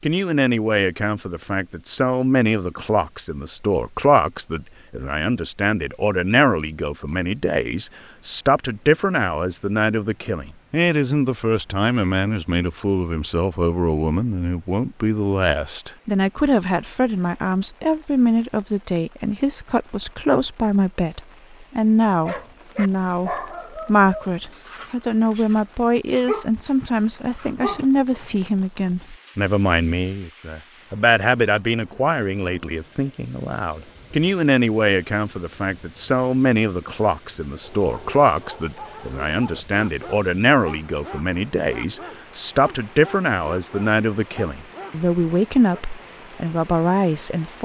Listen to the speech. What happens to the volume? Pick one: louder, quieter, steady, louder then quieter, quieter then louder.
steady.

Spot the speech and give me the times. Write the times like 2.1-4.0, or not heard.
0.0-47.6.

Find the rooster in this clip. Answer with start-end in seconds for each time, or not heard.
not heard.